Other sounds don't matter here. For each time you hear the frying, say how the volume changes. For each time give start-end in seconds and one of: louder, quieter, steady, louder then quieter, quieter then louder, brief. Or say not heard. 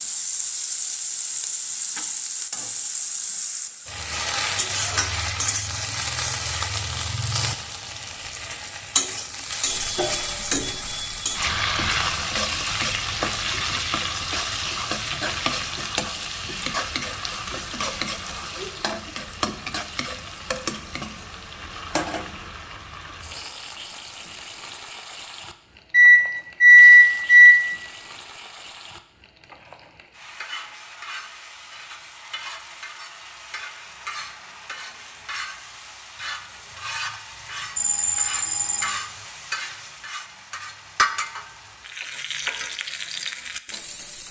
0.0-44.2 quieter then louder.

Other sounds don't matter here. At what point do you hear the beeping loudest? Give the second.
27 s.